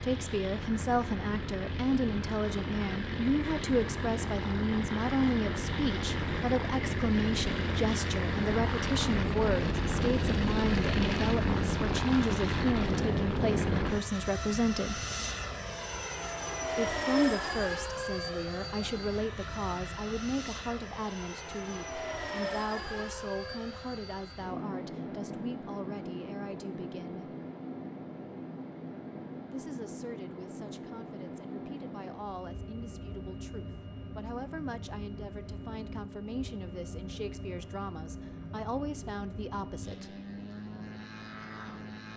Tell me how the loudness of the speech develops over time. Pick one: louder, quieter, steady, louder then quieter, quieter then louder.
quieter.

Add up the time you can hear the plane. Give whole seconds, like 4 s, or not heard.
42 s.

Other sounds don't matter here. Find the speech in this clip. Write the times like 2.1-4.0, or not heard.
0.0-15.0, 16.8-27.4, 29.5-40.1.